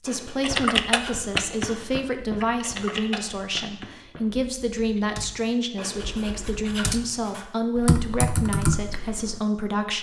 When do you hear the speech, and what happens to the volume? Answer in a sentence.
The speech can be heard from 0.0 to 9.9 s, at a steady volume.